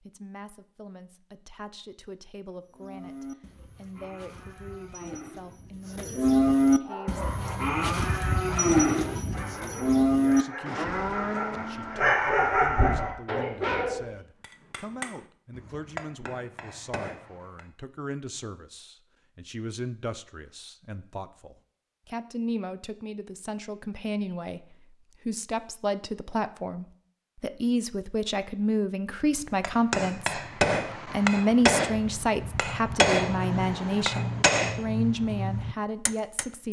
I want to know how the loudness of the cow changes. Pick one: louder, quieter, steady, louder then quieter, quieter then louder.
louder then quieter.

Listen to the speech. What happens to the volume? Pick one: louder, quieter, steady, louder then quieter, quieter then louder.
louder.